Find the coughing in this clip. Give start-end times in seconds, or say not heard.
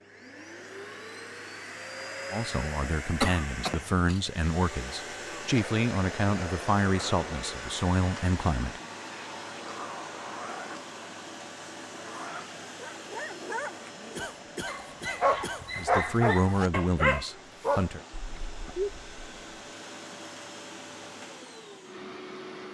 3.2-4.2, 14.2-15.8.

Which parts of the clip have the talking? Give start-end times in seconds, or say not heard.
2.3-8.8, 15.8-18.0.